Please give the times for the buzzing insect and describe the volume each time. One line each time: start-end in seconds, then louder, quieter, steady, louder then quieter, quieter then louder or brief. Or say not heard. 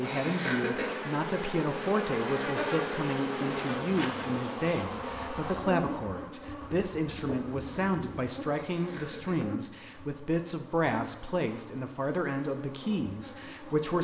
0.0-13.9 quieter.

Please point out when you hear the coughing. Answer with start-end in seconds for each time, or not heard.
0.0-0.9, 8.7-9.4.